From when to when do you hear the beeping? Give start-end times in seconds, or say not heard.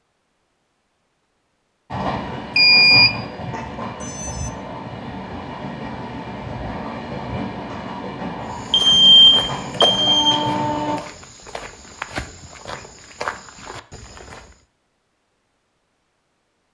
2.5-4.5, 8.7-10.4.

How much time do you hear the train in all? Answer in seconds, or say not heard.
9 s.